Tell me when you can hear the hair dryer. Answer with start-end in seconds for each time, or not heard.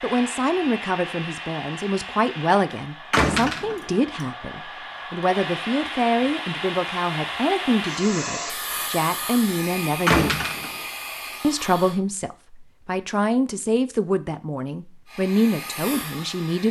0.0-12.0, 15.1-16.6.